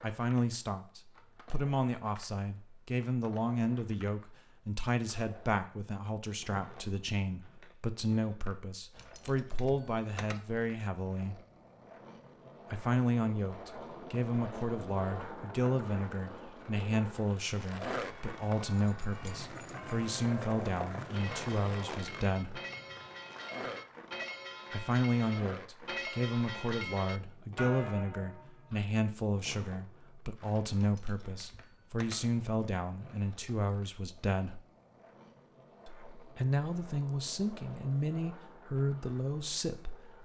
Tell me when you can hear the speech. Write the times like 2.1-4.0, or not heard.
0.0-11.4, 12.7-22.6, 24.7-34.6, 35.9-40.2.